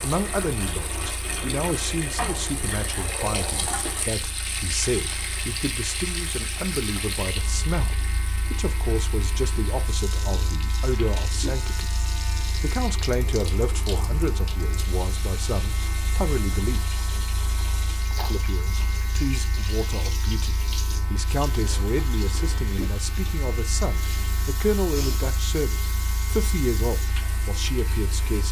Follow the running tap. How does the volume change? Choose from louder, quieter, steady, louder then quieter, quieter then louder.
quieter.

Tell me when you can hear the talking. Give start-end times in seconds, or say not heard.
0.0-11.9, 12.6-16.8, 18.3-28.4.